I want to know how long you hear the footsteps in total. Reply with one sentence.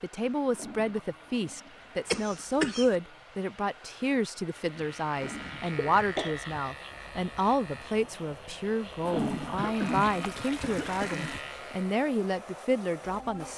The footsteps can't be heard in this clip.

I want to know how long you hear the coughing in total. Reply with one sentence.
The coughing can be heard for 4 seconds in total.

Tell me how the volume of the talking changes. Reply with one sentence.
The loudness of the talking stays about the same.